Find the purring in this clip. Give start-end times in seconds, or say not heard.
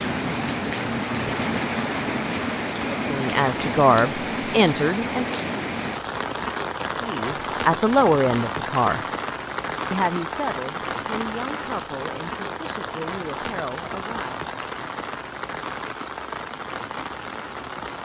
not heard.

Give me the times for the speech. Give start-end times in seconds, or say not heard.
2.9-5.3, 7.0-9.0, 9.9-14.4.